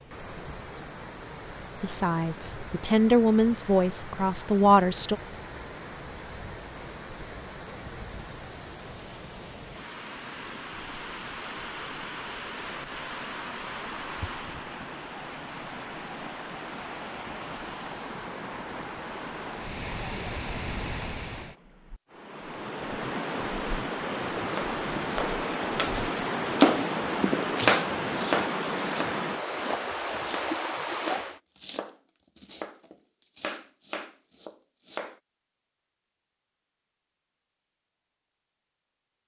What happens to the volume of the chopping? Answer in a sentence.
The loudness of the chopping goes down.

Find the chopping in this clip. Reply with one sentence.
You can hear the chopping from 24.5 to 35.2 s.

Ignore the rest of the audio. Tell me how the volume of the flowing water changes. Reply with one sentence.
The loudness of the flowing water goes up.